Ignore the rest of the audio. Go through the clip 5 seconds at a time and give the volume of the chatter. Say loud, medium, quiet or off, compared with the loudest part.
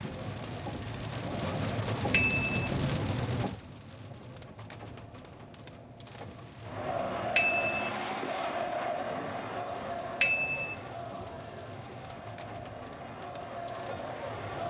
off, loud, medium.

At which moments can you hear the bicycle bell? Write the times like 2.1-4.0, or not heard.
2.1-2.7, 7.3-7.9, 10.2-10.8.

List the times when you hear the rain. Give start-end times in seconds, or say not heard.
0.0-14.6.